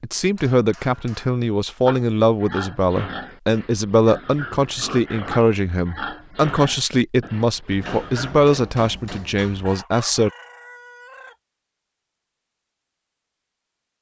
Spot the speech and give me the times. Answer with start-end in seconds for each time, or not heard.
0.0-10.3.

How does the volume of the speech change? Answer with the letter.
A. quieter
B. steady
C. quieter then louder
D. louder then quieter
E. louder
B.